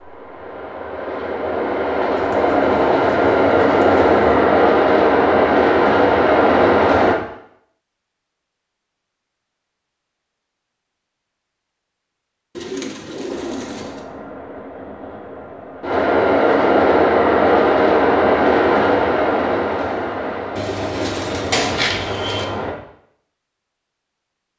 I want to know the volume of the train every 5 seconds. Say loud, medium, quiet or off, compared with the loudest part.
loud, loud, quiet, loud, quiet.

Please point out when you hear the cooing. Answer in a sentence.
The cooing can be heard from 2.1 to 4.5 s, from 12.6 to 14.0 s and from 20.6 to 22.4 s.